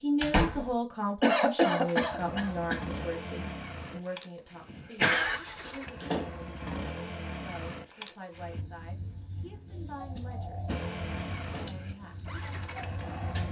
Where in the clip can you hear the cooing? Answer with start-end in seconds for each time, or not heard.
8.3-13.4.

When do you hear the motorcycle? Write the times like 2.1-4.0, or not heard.
1.9-8.7, 10.7-13.4.